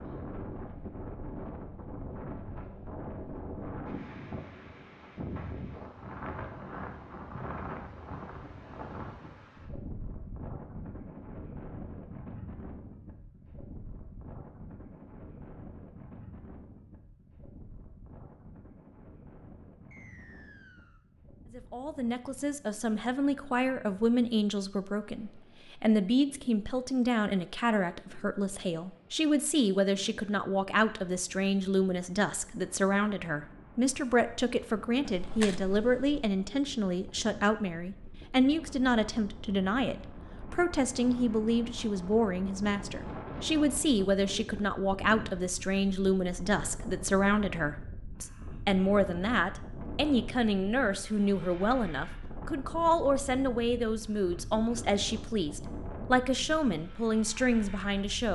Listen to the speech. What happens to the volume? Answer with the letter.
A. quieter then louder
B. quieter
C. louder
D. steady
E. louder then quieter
D.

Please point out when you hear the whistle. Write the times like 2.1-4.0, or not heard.
19.9-21.0.